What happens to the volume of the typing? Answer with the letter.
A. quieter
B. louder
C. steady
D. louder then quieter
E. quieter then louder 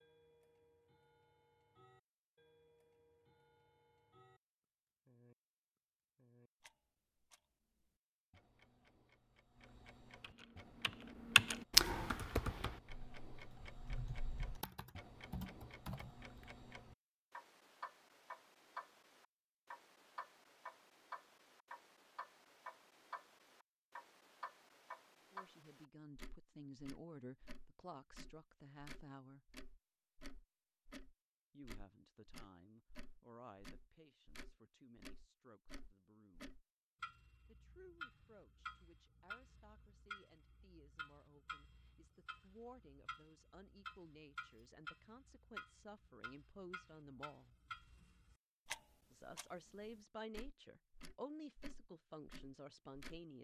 E.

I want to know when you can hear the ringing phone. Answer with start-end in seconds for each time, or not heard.
not heard.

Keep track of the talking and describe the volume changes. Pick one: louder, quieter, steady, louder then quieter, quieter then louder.
quieter then louder.